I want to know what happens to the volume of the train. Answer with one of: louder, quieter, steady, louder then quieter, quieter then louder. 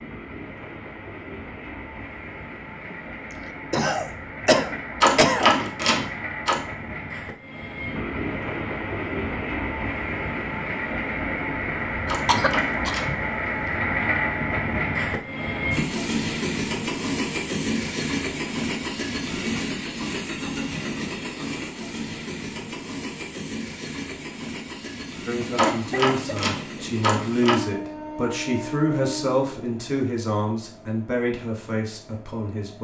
louder then quieter.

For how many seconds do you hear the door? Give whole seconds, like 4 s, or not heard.
5 s.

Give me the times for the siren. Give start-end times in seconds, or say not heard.
not heard.